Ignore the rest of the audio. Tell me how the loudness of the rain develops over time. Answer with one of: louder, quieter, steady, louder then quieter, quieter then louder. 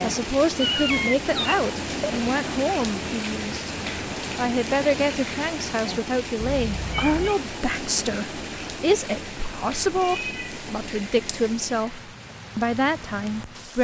quieter.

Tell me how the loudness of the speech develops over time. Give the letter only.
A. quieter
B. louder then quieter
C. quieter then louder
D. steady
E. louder
D.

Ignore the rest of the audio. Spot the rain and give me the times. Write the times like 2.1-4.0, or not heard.
0.0-13.7.